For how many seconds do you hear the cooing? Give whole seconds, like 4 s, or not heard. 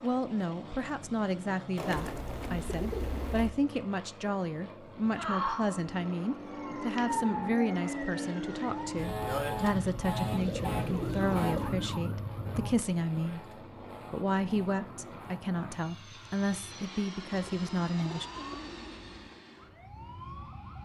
5 s.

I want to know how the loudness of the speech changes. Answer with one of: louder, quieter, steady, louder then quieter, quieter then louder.
steady.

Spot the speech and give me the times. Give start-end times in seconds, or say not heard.
0.0-13.4, 14.1-18.2.